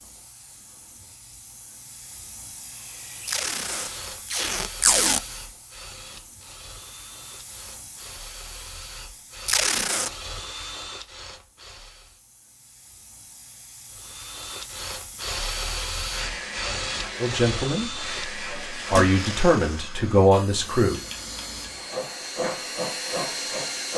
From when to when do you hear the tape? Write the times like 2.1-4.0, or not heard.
3.2-5.2, 9.4-10.1, 19.4-19.8.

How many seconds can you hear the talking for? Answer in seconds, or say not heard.
3 s.